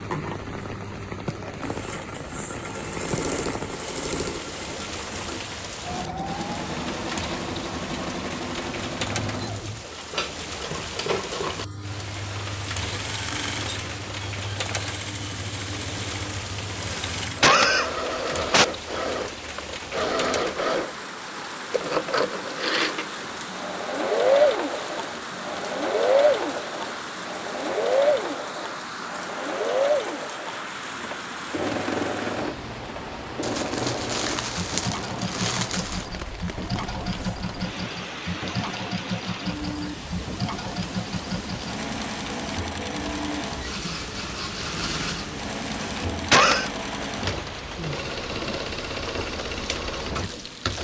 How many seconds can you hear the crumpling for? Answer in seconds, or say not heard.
3 s.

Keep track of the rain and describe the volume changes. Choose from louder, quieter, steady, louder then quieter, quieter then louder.
steady.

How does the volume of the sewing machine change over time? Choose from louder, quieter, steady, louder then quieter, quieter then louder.
louder then quieter.